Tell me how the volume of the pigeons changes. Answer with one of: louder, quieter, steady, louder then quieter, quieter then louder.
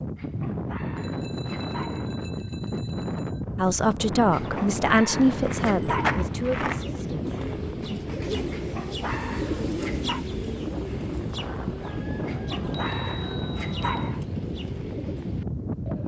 quieter.